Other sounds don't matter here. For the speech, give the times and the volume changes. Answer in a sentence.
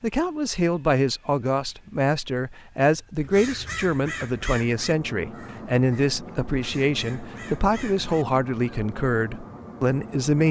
The speech can be heard from 0.0 to 10.4 s, at a steady volume.